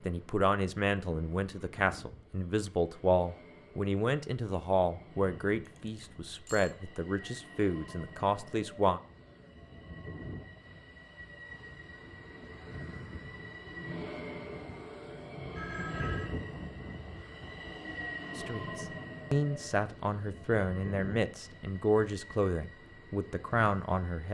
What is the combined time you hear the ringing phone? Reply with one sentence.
You can hear the ringing phone for 2 seconds altogether.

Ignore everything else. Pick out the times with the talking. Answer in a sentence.
You can hear the talking from 0.0 to 9.0 s and from 18.4 to 24.2 s.